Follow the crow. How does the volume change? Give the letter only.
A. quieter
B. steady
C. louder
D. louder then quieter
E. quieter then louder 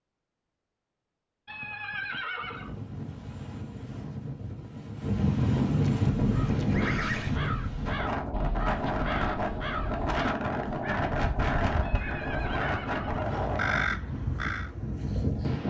C.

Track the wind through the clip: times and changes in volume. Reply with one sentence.
You can hear the wind from 2.4 to 15.6 s, getting louder then quieter.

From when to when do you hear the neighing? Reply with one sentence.
You can hear the neighing from 1.4 to 2.7 s, from 5.8 to 7.3 s and from 11.8 to 13.7 s.